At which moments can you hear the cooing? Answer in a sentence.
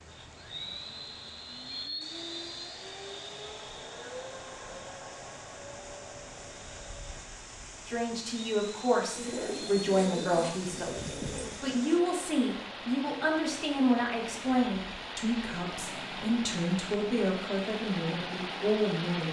The cooing can be heard from 9.2 to 11.7 s.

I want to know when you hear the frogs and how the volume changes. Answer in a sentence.
You can't hear the frogs here.